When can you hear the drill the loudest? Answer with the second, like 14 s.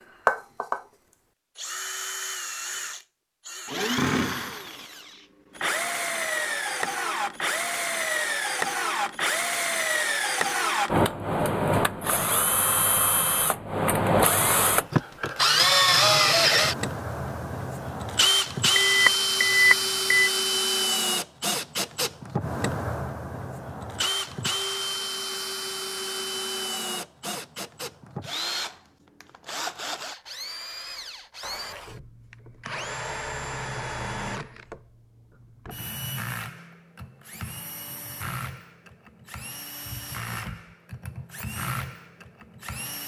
16 s.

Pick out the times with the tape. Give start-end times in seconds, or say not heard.
not heard.